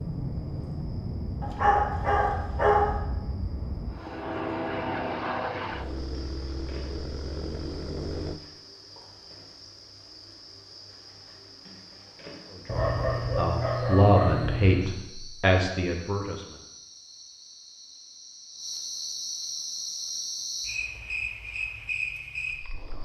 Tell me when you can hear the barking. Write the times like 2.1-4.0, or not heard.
1.4-3.0, 12.7-14.9.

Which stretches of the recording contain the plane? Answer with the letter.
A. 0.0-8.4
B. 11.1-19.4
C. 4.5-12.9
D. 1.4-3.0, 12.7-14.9
A.